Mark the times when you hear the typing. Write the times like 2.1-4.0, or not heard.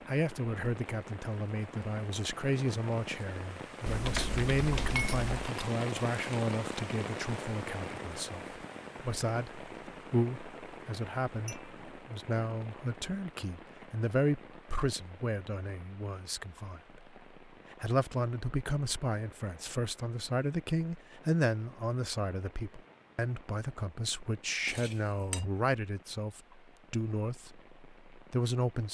3.9-5.5.